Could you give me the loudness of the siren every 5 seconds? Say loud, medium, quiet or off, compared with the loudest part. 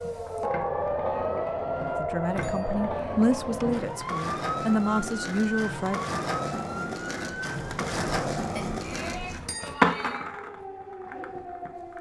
loud, medium, medium.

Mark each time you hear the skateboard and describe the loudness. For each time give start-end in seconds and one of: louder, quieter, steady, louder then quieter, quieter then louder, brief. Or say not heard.
0.0-11.9 louder.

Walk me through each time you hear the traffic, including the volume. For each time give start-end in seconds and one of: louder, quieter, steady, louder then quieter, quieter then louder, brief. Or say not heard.
not heard.